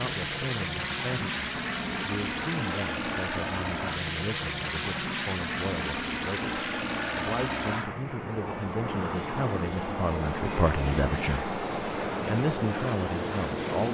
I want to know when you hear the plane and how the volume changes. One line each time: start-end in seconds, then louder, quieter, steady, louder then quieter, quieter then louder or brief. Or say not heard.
0.0-13.9 steady.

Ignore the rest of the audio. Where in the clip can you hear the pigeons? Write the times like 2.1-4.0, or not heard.
not heard.